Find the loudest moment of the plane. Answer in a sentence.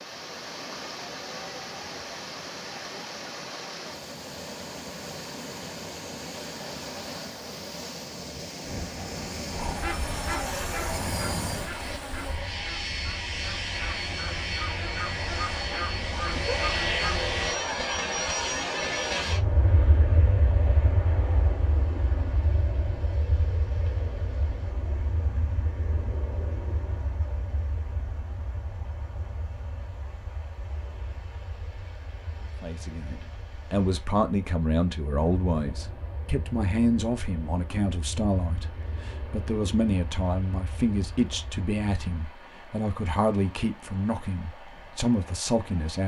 The loudest moment of the plane is at 17 seconds.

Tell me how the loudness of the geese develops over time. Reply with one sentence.
The volume of the geese goes down, then up.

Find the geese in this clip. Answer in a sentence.
You can hear the geese from 9.6 to 17.2 s.